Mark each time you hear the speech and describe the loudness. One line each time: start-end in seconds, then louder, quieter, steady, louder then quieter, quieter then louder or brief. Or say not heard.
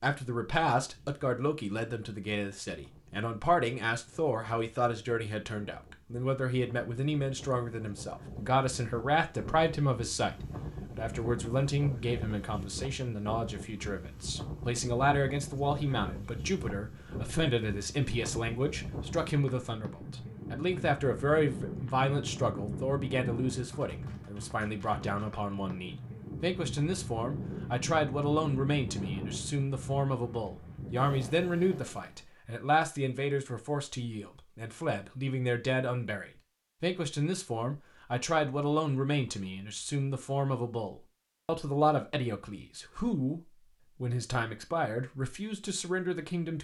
0.0-46.5 steady.